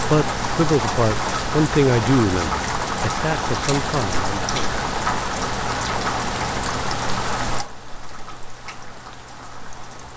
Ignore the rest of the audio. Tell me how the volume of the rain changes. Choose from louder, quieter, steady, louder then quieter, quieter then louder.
quieter.